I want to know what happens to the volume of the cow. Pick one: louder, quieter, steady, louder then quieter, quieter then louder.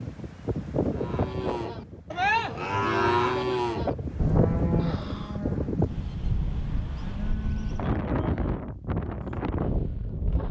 quieter.